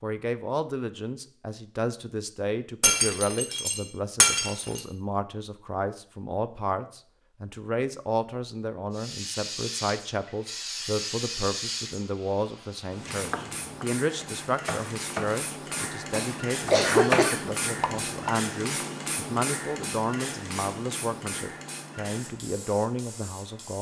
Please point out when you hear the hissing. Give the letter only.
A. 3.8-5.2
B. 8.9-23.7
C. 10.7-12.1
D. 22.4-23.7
B.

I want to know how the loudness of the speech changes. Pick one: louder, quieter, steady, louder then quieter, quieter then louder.
steady.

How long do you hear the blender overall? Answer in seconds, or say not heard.
not heard.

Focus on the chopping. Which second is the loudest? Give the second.
17 s.